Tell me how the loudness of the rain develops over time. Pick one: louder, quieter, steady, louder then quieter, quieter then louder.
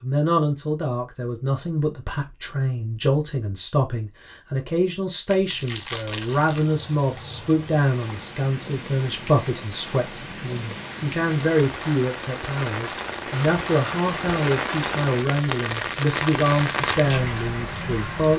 louder.